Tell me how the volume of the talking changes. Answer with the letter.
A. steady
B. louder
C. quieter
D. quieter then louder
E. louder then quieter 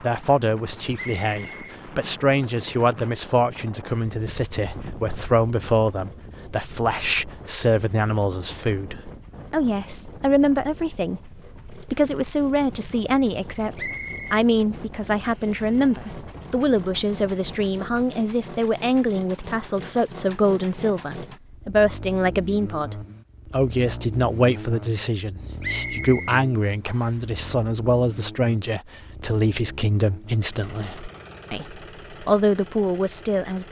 A.